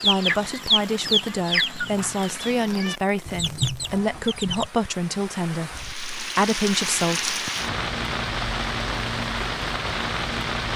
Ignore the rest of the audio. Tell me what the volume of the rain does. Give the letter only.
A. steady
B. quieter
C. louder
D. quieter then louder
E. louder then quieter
C.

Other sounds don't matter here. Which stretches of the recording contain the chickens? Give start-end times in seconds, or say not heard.
0.0-4.7.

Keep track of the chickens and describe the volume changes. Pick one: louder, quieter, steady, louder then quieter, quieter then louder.
quieter then louder.